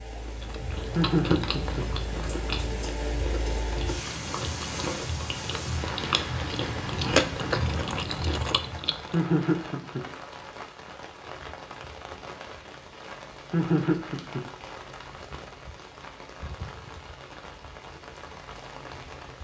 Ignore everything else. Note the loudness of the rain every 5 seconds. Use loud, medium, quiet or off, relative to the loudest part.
loud, loud, medium, medium.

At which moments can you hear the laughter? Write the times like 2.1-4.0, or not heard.
0.9-1.9, 9.1-10.1, 13.5-14.4.